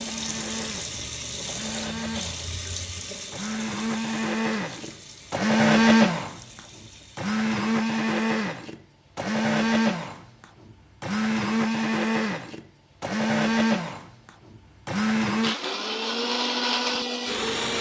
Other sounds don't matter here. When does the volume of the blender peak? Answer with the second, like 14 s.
6 s.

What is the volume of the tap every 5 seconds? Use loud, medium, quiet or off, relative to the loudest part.
loud, quiet, off, off.